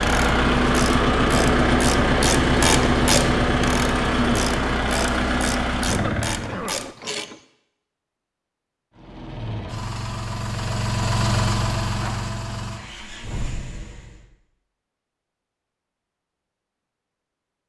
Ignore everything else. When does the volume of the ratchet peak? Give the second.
3 s.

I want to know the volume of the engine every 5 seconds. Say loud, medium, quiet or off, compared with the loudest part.
loud, medium, medium, off.